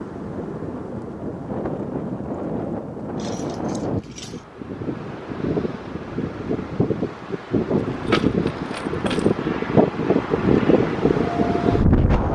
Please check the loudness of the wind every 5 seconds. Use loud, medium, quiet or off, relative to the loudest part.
medium, loud, loud.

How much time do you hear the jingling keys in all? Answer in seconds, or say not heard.
3 s.